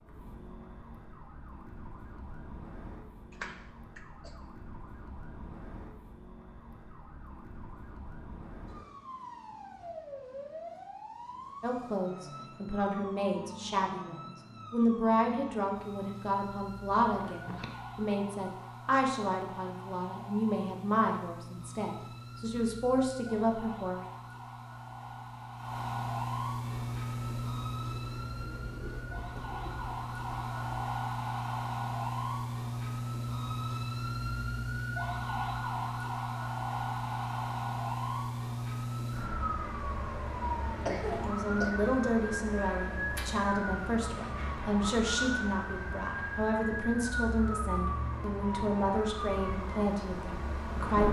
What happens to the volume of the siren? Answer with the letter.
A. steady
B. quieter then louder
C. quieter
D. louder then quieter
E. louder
E.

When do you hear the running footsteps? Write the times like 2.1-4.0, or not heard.
not heard.